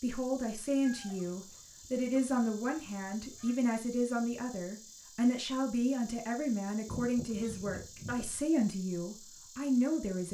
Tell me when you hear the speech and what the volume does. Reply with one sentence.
You can hear the speech from 0.0 to 10.3 s, at a steady volume.